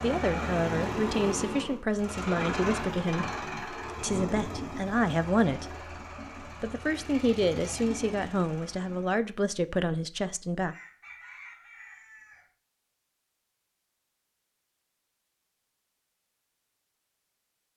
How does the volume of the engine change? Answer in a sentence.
The loudness of the engine goes down.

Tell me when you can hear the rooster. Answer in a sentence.
You can hear the rooster from 10.7 to 12.5 s.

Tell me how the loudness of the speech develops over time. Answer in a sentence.
The loudness of the speech stays about the same.